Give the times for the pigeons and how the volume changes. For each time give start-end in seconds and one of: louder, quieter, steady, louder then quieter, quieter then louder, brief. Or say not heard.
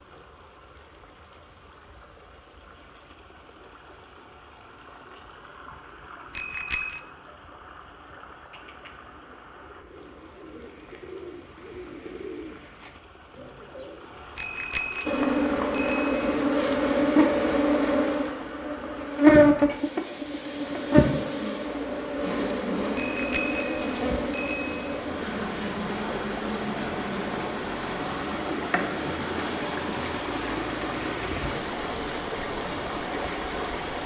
8.5-14.1 louder then quieter.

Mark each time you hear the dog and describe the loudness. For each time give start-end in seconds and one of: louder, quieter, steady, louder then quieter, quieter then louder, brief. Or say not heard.
not heard.